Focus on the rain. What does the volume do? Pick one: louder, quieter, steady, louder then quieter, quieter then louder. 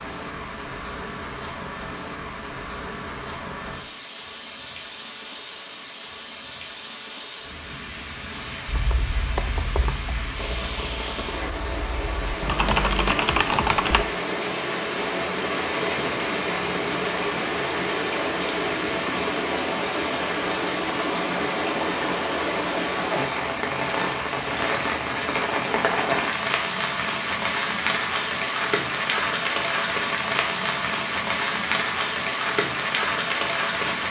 louder.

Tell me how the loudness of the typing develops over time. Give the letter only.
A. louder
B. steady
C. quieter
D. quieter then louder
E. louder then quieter
D.